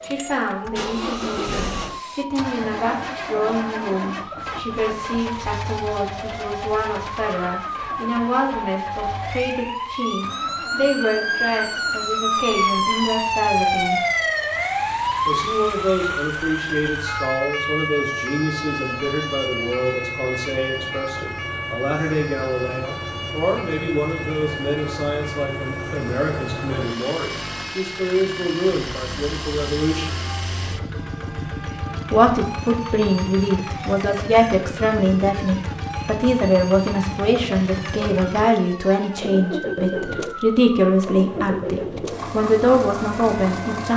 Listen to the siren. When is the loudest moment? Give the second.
14 s.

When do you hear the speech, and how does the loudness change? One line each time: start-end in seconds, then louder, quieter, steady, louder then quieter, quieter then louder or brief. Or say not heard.
0.0-13.9 steady
15.2-30.1 steady
32.1-43.9 steady.